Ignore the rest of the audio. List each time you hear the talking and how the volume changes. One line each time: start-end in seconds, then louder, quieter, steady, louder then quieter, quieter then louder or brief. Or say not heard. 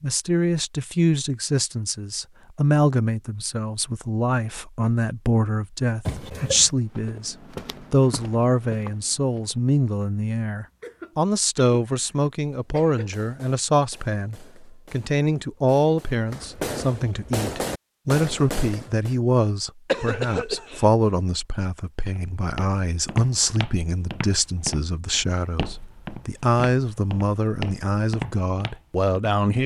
0.0-29.6 steady.